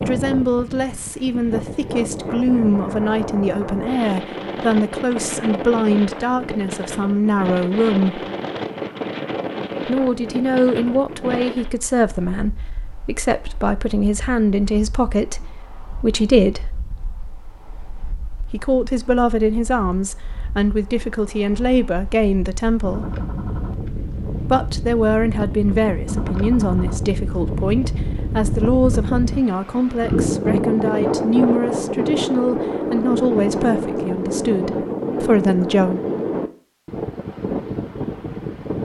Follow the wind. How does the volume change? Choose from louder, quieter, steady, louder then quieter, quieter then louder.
quieter then louder.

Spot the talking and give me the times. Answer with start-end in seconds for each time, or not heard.
0.0-8.2, 9.8-16.7, 18.4-23.1, 24.5-36.0.